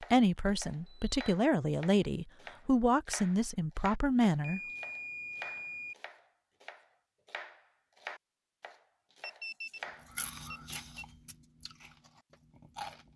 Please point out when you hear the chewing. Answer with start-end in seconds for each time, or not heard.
10.1-13.1.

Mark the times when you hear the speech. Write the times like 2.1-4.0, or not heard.
0.0-4.6.